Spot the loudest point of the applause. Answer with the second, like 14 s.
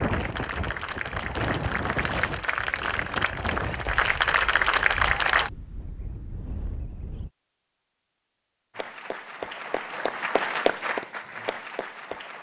5 s.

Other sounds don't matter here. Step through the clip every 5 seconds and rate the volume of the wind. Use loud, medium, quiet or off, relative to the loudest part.
loud, medium, off.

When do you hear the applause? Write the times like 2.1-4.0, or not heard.
0.0-5.5, 8.8-12.3.